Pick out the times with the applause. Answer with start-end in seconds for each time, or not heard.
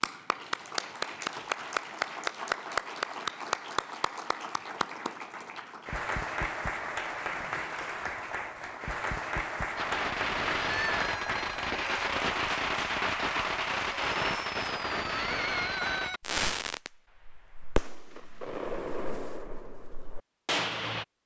0.0-14.6.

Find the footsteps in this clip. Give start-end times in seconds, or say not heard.
not heard.